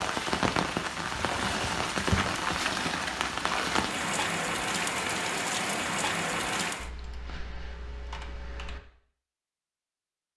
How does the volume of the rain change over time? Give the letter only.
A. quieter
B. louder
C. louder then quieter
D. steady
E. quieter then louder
D.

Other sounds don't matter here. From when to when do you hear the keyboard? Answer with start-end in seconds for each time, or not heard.
1.2-2.7, 6.8-8.8.